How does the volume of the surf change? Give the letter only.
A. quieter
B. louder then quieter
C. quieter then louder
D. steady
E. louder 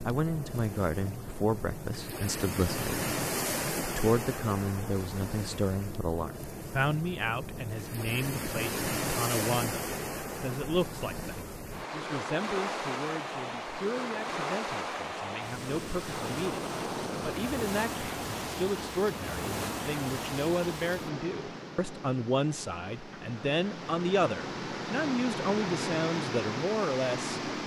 D.